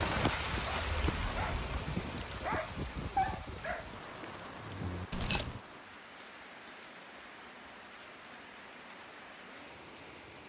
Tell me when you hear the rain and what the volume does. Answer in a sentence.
The rain can be heard from 0.0 to 10.4 s, getting quieter.